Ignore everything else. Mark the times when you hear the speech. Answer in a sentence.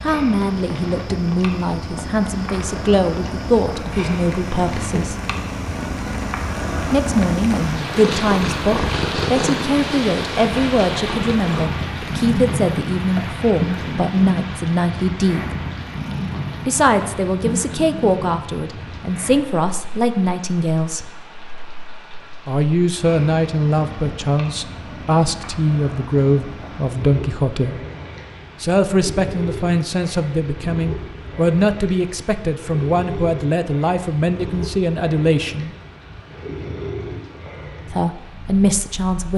You can hear the speech from 0.0 to 5.2 s, from 6.9 to 15.4 s, from 16.6 to 21.1 s, from 22.4 to 27.8 s, from 28.6 to 35.8 s and from 37.9 to 39.3 s.